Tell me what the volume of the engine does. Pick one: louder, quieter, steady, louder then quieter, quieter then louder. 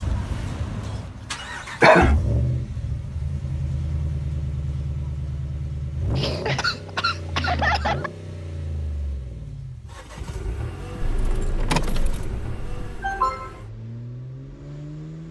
quieter.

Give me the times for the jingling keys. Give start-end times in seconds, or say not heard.
11.0-12.8.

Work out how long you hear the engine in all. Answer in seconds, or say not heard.
15 s.